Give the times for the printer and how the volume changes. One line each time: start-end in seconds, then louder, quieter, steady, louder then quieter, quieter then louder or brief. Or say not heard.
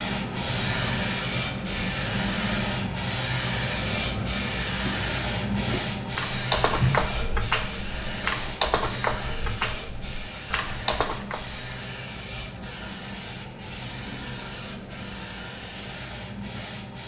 0.0-17.0 quieter.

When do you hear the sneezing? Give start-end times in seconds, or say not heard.
not heard.